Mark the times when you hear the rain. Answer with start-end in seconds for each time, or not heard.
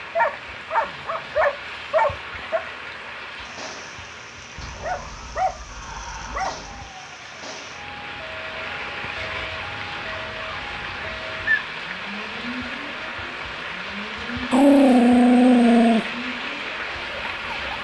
0.0-17.7.